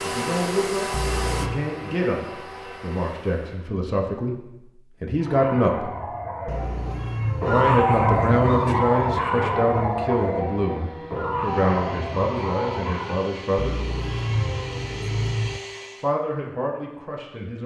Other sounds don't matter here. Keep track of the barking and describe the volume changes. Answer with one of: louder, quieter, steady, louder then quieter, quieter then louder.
louder then quieter.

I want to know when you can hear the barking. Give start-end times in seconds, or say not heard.
5.2-13.3.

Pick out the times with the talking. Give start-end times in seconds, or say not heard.
0.0-6.0, 7.5-13.8, 16.0-17.6.